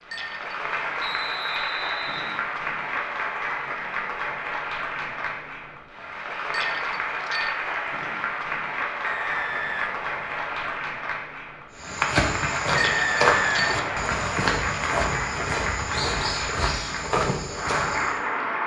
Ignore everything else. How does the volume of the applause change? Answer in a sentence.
The loudness of the applause stays about the same.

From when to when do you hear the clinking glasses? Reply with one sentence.
You can hear the clinking glasses from 0.0 to 0.6 s, from 6.5 to 7.6 s and from 12.8 to 13.8 s.